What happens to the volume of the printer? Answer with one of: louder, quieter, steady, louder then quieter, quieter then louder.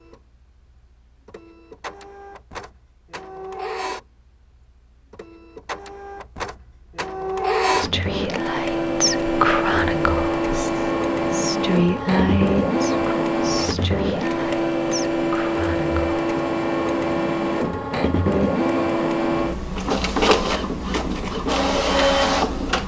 louder.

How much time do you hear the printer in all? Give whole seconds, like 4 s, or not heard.
23 s.